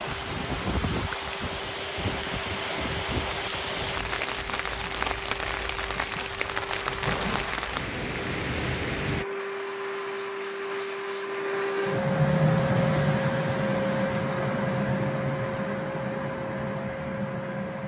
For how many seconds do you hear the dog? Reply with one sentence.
The dog can't be heard in this clip.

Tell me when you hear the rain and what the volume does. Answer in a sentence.
You can hear the rain from 0.0 to 9.2 s, at a steady volume.